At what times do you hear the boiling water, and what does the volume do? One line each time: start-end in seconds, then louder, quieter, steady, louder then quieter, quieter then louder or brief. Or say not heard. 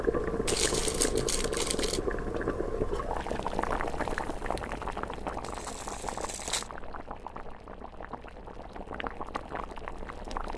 0.0-10.5 quieter.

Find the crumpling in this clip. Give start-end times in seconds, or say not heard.
0.5-2.0, 5.4-6.7.